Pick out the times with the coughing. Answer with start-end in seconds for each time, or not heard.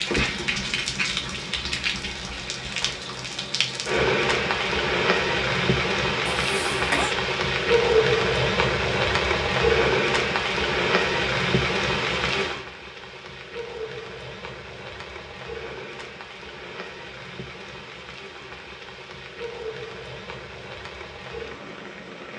6.2-7.2.